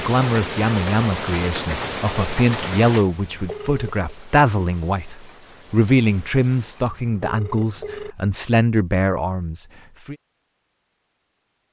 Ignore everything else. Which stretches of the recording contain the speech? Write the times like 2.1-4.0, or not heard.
0.0-10.2.